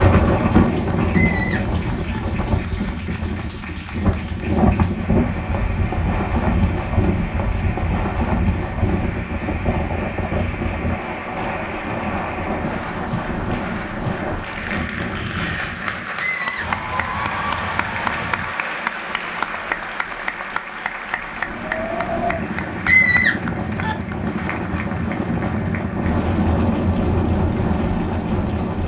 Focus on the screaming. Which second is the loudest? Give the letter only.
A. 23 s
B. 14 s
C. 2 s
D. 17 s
A.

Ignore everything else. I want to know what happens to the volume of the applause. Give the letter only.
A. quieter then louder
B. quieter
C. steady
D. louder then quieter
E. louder
D.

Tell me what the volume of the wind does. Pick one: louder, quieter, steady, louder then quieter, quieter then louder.
quieter then louder.